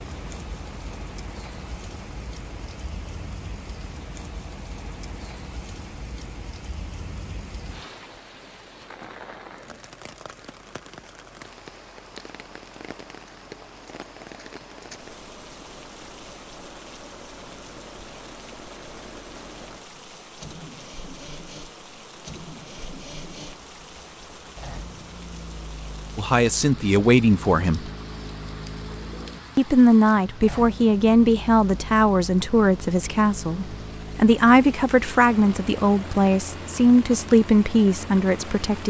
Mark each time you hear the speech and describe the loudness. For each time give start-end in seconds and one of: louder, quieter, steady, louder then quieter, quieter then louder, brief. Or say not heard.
26.1-27.9 brief
29.6-38.8 steady.